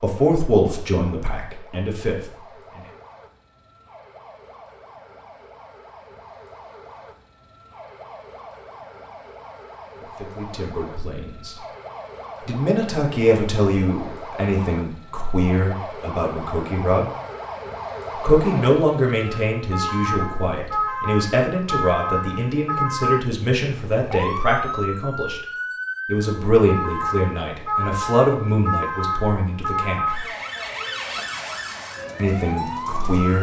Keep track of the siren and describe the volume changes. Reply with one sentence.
The volume of the siren goes up.